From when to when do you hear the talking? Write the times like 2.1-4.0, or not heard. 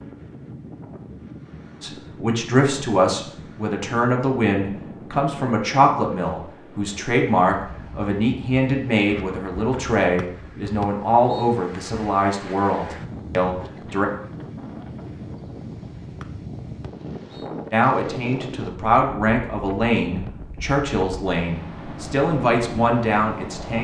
1.8-14.1, 17.7-23.8.